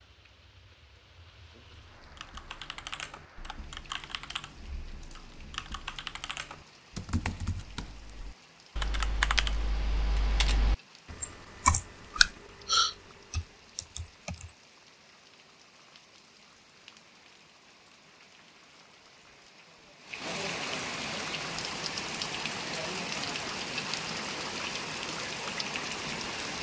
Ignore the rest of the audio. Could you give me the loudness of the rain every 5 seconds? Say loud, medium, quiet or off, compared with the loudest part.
quiet, quiet, quiet, quiet, loud, loud.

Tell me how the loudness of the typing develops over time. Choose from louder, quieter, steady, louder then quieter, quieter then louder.
louder.